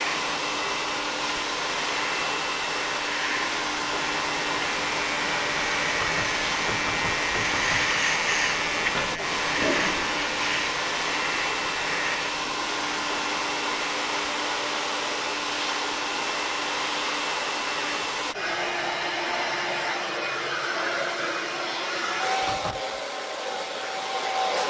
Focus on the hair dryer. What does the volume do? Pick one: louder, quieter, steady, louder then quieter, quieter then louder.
steady.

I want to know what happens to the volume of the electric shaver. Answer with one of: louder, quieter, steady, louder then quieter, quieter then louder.
louder then quieter.